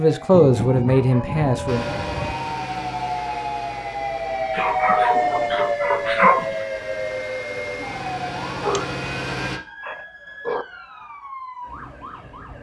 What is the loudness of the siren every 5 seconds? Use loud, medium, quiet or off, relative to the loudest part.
loud, loud, quiet.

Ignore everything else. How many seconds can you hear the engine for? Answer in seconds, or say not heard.
8 s.